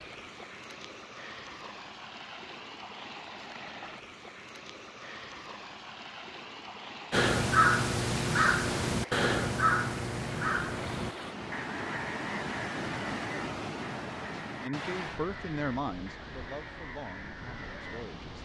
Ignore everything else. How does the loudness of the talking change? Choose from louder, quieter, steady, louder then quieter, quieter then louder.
quieter.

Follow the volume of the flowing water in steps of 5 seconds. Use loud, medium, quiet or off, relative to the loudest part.
medium, medium, loud, medium.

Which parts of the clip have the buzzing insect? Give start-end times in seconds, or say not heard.
not heard.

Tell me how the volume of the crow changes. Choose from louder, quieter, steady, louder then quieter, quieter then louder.
quieter.